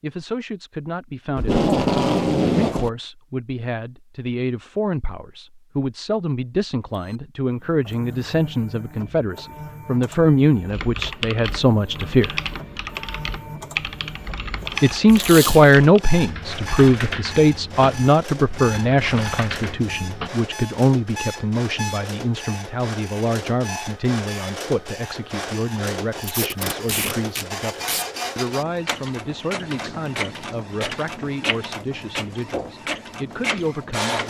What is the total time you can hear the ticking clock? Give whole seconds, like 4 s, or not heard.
not heard.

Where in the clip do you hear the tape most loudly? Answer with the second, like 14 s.
2 s.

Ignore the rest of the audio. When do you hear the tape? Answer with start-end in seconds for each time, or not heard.
1.4-2.9, 15.1-15.7, 26.2-28.1.